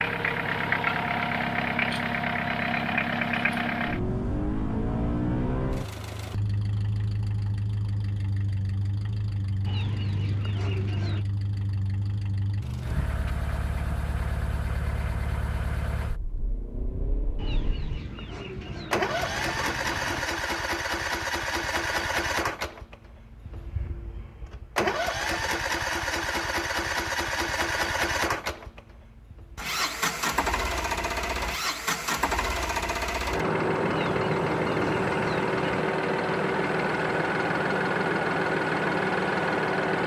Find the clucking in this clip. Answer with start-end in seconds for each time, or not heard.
9.7-11.2, 17.4-20.2, 33.9-35.9.